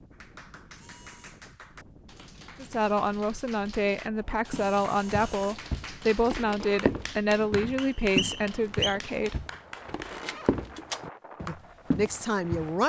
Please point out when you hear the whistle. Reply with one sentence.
The whistle can be heard from 7.8 to 8.9 s.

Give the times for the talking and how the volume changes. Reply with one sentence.
The talking can be heard from 2.6 to 9.4 s, at a steady volume; and briefly from 11.4 to 12.8 s.